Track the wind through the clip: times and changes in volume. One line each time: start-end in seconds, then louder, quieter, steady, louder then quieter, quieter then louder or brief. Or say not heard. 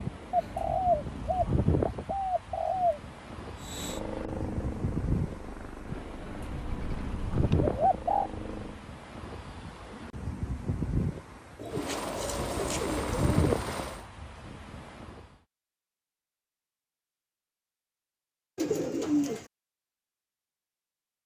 0.0-15.2 steady.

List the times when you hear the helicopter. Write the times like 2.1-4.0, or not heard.
3.5-8.8, 11.7-14.1.